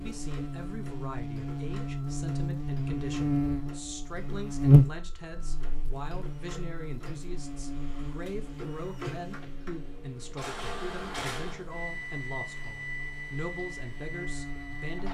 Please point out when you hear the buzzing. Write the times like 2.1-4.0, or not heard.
0.0-15.0.